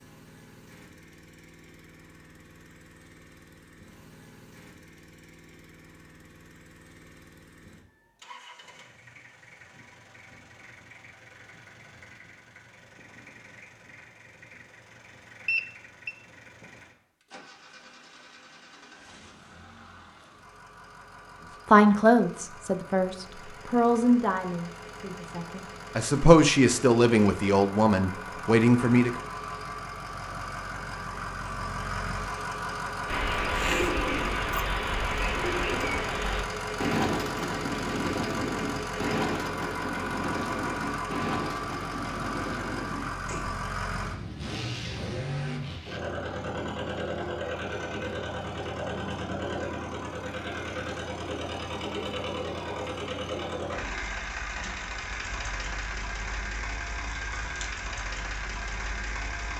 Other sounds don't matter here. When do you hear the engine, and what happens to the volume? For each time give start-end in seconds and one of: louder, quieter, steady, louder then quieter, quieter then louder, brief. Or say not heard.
0.0-59.5 louder.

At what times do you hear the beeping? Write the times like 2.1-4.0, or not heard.
15.4-16.1.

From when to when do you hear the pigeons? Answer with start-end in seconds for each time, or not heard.
33.0-43.5.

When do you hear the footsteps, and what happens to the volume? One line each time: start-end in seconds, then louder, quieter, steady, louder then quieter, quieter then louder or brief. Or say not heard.
not heard.